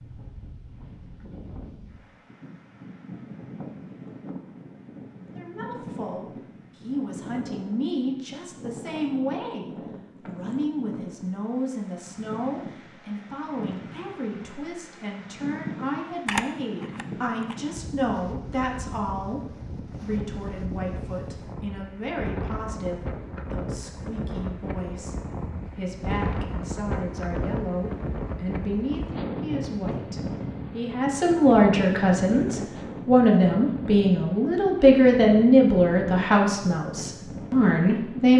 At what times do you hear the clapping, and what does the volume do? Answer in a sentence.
You can't hear the clapping here.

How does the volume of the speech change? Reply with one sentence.
The loudness of the speech goes up.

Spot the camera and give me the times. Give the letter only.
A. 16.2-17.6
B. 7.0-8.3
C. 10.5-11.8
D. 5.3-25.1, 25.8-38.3
A.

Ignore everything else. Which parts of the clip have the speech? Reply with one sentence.
You can hear the speech from 5.3 to 25.1 s and from 25.8 to 38.3 s.